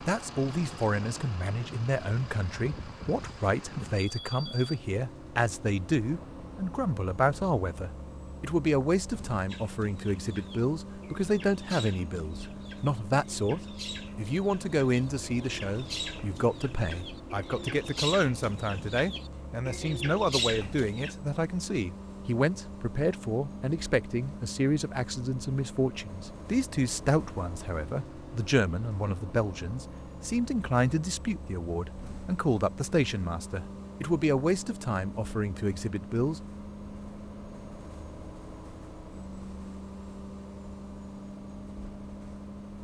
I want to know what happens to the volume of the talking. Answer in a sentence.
The volume of the talking stays about the same.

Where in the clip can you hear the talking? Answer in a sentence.
The talking can be heard from 0.0 to 36.4 s.